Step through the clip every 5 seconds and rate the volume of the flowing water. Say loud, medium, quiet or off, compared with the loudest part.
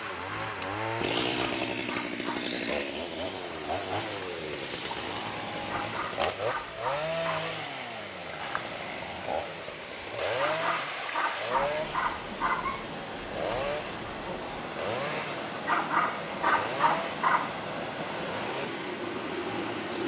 medium, medium, loud, loud.